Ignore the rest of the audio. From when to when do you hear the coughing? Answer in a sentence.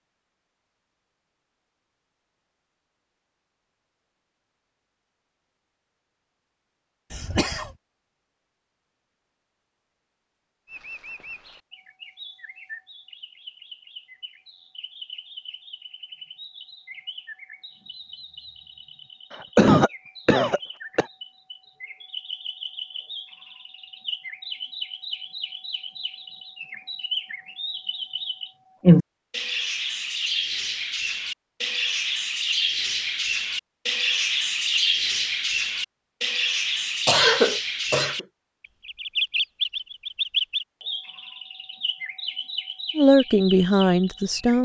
The coughing can be heard from 7.1 to 7.7 s, from 19.3 to 21.1 s and from 37.0 to 38.2 s.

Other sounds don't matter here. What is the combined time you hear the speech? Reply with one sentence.
The speech can be heard for 2 seconds in total.